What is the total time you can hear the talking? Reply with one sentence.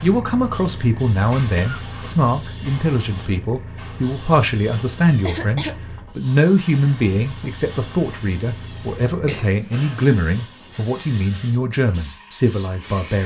The talking can be heard for 13 seconds in total.